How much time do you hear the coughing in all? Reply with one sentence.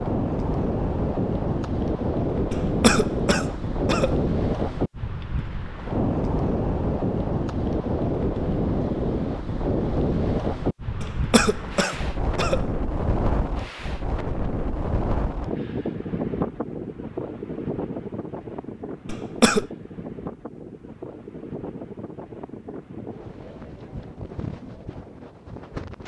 You can hear the coughing for 4 seconds altogether.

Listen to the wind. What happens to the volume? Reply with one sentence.
The loudness of the wind goes down.